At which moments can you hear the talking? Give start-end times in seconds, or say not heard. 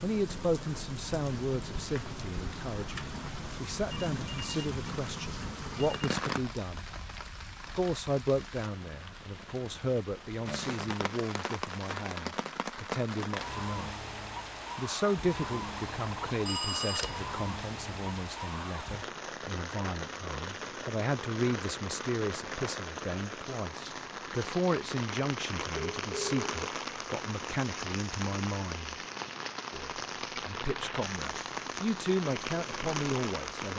0.0-6.9, 7.8-13.9, 14.8-29.0, 29.7-33.7.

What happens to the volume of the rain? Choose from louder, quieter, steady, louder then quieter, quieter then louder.
steady.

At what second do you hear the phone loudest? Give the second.
17 s.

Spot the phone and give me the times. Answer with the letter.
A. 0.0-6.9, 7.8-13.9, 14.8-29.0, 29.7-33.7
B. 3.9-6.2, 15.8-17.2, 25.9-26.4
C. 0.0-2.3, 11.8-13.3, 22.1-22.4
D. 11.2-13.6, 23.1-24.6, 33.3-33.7
B.